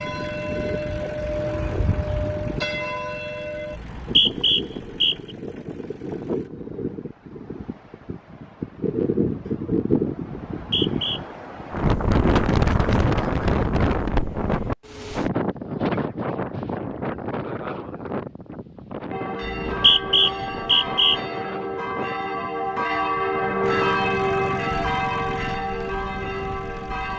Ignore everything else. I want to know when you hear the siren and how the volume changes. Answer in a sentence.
You can't hear the siren here.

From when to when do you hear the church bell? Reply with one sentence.
The church bell can be heard from 0.0 to 3.8 s and from 19.1 to 27.1 s.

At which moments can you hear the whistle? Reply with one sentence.
The whistle can be heard from 3.8 to 5.2 s, from 10.6 to 11.2 s and from 19.4 to 21.2 s.